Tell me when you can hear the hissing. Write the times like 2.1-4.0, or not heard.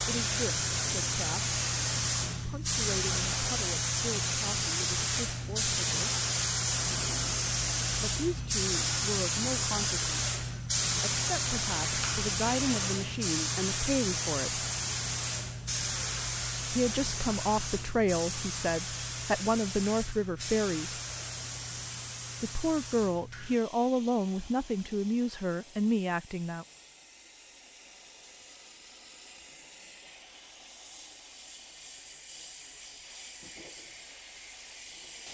0.0-35.3.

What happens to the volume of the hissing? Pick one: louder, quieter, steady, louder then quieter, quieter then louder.
quieter.